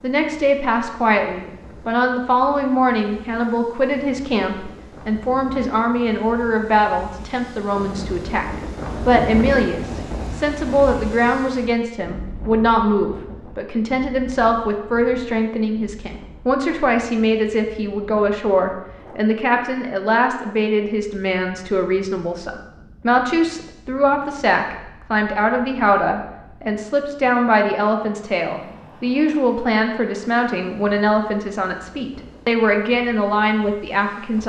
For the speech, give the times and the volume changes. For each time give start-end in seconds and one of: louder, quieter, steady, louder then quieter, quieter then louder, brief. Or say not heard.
0.0-34.4 steady.